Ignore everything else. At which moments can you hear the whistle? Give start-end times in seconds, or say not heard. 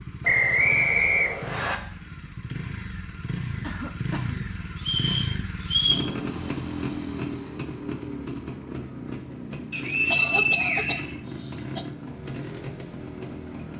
0.2-1.8, 4.8-6.1, 9.7-11.2.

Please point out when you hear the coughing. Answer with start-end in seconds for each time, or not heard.
3.6-4.5, 10.1-11.8.